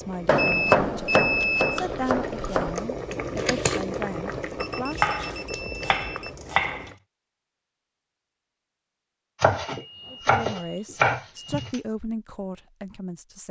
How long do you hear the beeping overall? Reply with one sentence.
You can hear the beeping for 5 seconds altogether.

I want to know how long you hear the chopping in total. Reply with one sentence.
The chopping can be heard for 7 seconds in total.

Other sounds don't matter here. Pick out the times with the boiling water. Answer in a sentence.
The boiling water can be heard from 0.0 to 7.0 s.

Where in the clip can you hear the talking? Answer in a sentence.
The talking can be heard from 0.0 to 5.2 s and from 10.1 to 13.4 s.